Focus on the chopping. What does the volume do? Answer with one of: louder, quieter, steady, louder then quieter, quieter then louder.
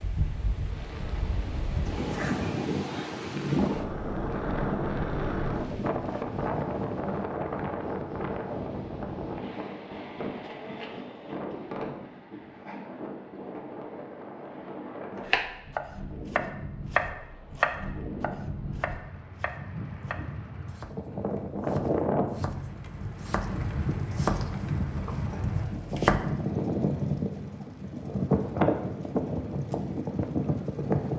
quieter then louder.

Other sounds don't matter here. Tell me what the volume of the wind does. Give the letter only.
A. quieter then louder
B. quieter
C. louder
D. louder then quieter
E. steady
A.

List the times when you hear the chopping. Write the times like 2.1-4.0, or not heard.
15.2-26.2.